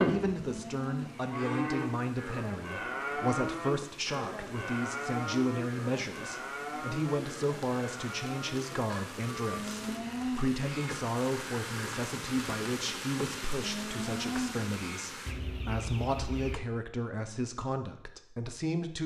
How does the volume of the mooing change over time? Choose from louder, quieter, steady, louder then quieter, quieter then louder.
quieter.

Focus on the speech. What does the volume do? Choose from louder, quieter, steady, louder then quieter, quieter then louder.
steady.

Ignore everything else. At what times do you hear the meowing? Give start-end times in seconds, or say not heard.
0.3-1.6, 9.5-11.1, 13.6-15.1.